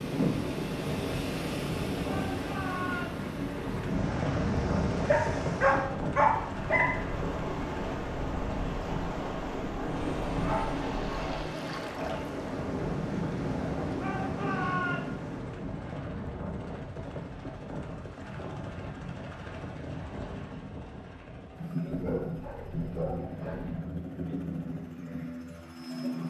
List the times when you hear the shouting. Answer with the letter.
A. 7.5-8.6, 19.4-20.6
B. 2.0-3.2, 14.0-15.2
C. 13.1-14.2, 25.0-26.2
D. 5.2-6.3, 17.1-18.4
B.